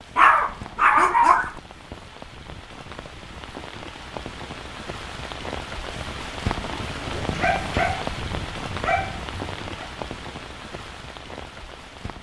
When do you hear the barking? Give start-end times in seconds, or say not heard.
0.1-1.6, 7.2-9.8.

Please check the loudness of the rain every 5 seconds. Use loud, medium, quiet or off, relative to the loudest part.
medium, loud, medium.